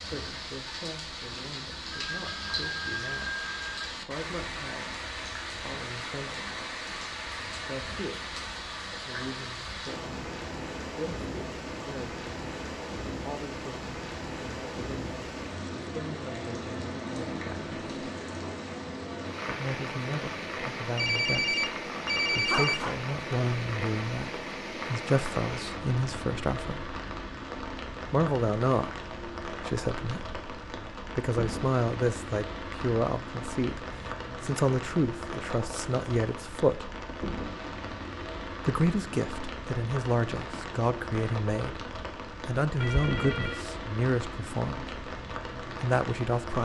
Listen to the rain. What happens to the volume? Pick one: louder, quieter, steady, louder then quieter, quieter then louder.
steady.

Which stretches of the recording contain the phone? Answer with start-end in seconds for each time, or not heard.
1.9-3.9, 20.9-22.9, 42.8-43.6.